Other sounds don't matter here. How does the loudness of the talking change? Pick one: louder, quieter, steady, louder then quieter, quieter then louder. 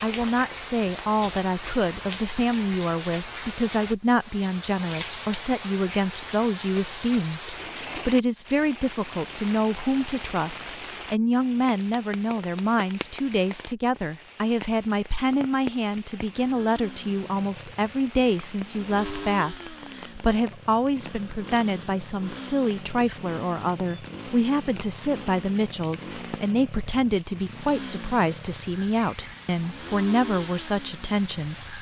steady.